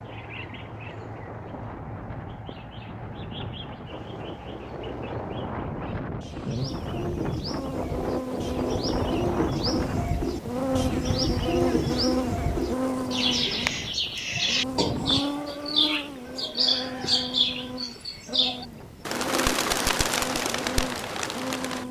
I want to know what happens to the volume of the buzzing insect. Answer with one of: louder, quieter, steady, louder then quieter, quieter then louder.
louder then quieter.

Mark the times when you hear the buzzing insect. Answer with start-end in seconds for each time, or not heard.
6.2-21.8.